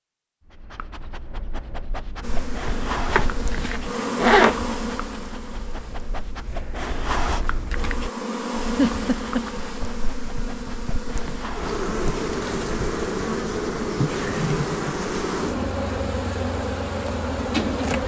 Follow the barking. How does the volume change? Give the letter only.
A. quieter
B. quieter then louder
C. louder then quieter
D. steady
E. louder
C.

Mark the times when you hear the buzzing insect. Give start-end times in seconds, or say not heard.
2.2-18.0.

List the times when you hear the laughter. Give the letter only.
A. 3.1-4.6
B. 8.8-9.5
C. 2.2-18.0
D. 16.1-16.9
B.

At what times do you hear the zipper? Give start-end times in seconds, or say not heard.
3.1-4.6.